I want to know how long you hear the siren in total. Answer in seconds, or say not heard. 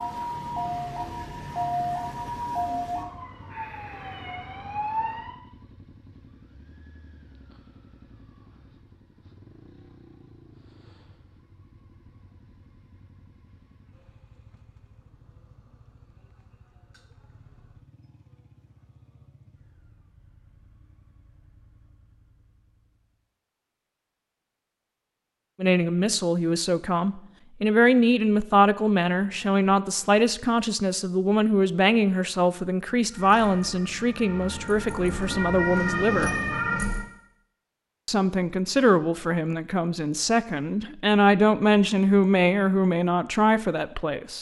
9 s.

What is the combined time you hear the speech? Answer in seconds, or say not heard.
17 s.